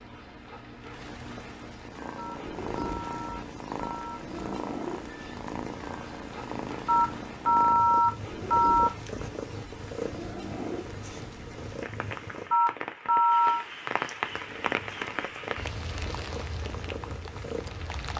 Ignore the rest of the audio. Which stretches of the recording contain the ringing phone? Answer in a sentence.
You can hear the ringing phone from 2.1 to 4.2 s, from 6.8 to 8.9 s and from 12.5 to 13.7 s.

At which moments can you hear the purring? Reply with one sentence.
You can hear the purring from 1.8 to 12.6 s and from 14.2 to 17.9 s.